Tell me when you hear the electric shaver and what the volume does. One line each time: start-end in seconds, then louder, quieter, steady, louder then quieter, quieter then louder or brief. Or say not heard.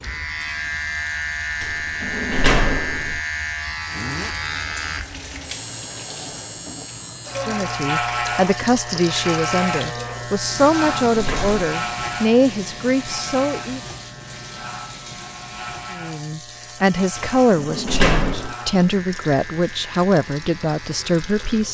0.0-21.6 quieter.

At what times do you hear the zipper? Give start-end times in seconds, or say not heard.
3.9-4.4.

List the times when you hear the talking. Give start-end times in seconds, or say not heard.
7.5-13.8, 15.9-21.6.